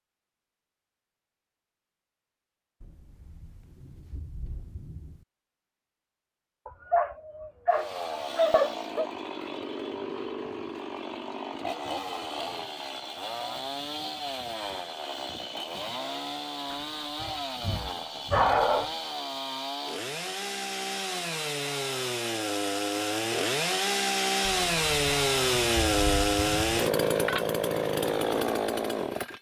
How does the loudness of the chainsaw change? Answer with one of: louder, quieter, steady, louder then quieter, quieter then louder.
louder.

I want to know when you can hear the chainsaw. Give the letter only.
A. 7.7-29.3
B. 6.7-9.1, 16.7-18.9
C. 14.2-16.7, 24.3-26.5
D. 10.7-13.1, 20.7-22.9
A.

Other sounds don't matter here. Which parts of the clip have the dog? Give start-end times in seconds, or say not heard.
6.7-9.1, 16.7-18.9.